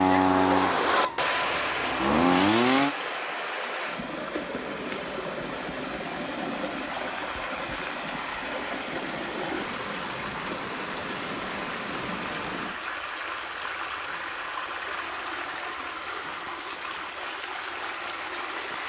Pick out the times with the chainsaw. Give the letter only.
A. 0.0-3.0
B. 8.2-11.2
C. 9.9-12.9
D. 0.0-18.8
A.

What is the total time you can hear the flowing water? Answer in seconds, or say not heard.
19 s.